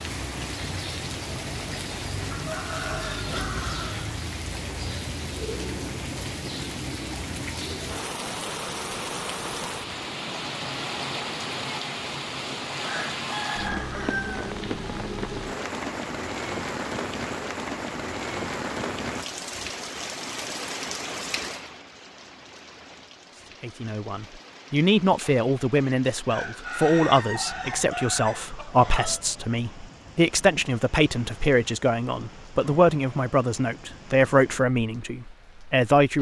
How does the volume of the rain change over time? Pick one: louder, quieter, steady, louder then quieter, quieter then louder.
quieter.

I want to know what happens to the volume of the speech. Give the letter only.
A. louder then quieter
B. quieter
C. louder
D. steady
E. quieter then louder
D.